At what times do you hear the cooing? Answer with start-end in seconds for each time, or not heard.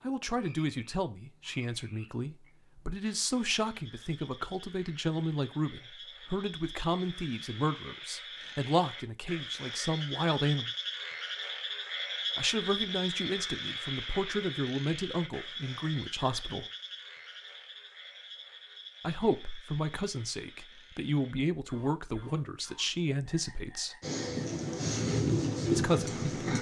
24.0-26.5.